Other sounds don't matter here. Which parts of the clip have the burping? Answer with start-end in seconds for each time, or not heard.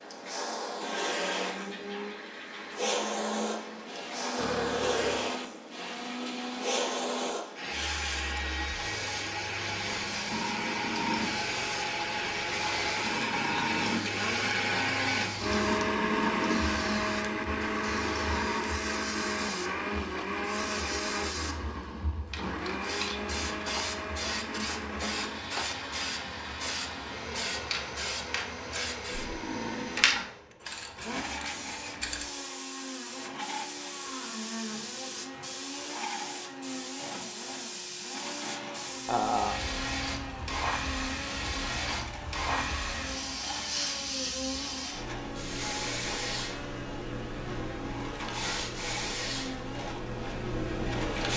4.3-5.3, 29.1-30.3, 39.0-39.6.